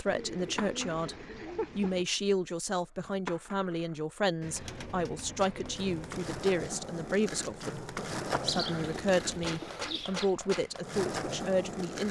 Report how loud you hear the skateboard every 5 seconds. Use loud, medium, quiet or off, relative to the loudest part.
medium, loud, loud.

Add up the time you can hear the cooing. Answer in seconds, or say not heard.
6 s.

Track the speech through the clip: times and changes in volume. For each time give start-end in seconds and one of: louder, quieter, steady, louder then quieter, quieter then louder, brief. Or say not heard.
0.0-12.0 steady.